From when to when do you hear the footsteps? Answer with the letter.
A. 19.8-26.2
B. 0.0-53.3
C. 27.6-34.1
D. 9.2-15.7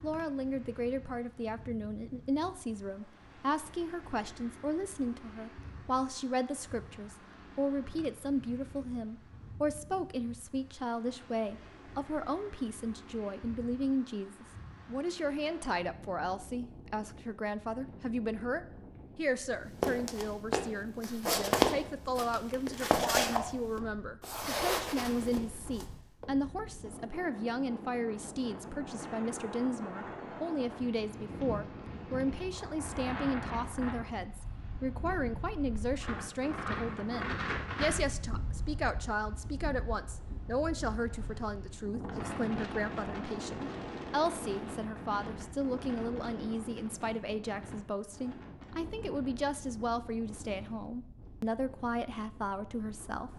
A.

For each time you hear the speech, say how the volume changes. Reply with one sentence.
The speech can be heard from 0.0 to 53.3 s, at a steady volume.